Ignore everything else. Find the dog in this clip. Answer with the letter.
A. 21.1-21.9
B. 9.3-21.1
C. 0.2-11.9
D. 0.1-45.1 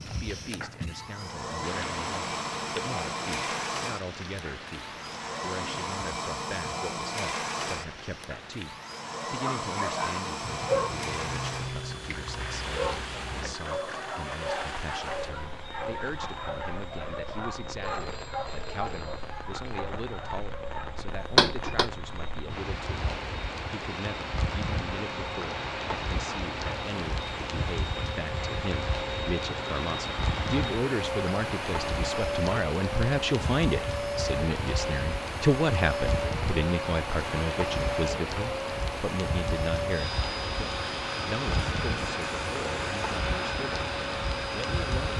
B.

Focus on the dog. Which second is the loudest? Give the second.
11 s.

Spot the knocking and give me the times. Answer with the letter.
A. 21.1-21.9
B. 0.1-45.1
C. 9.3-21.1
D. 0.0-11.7
A.